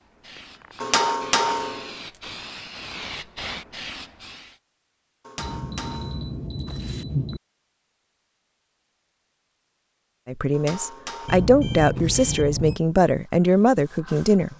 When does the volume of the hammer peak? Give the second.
1 s.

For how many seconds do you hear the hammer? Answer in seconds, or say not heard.
5 s.